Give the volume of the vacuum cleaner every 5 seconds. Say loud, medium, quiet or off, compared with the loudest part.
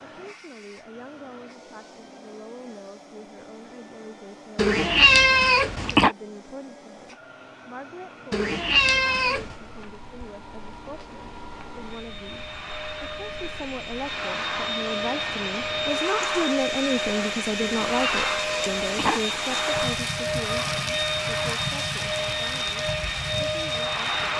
quiet, quiet, medium, loud, loud.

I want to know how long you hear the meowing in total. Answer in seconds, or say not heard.
5 s.